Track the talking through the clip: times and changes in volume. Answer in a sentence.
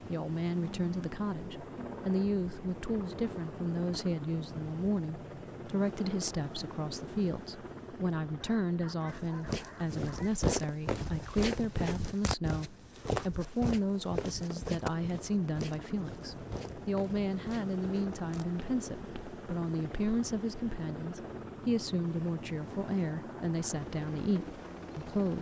The talking can be heard from 0.1 to 25.3 s, at a steady volume.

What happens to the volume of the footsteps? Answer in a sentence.
The volume of the footsteps goes down.